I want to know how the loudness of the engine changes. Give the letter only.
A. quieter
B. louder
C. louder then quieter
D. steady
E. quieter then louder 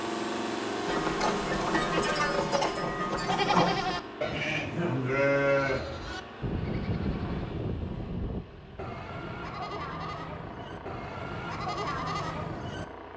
A.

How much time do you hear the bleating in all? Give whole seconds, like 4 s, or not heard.
12 s.